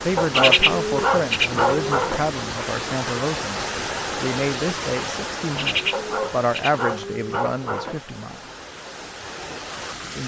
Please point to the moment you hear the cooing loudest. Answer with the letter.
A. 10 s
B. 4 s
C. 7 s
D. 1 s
D.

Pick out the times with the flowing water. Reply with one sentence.
The flowing water can be heard from 0.0 to 10.2 s.